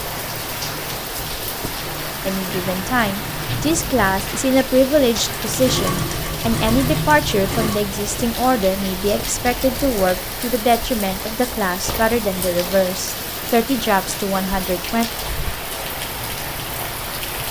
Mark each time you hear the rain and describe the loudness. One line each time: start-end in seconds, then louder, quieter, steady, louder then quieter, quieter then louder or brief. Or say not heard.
0.0-17.4 steady.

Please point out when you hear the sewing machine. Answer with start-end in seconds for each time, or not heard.
5.4-7.8.